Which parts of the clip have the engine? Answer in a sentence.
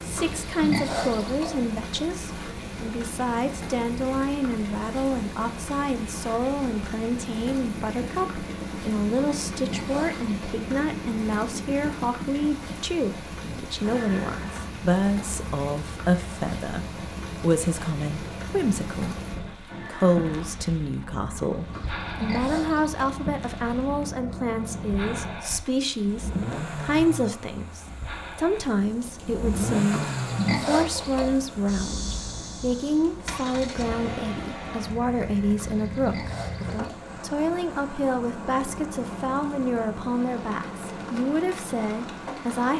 The engine can be heard from 0.0 to 42.7 s.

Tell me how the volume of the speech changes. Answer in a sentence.
The volume of the speech stays about the same.